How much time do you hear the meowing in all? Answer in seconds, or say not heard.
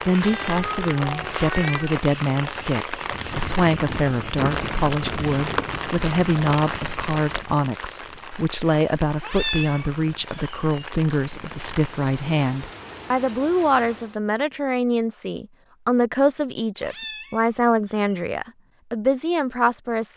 5 s.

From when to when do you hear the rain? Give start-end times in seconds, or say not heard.
0.0-14.2.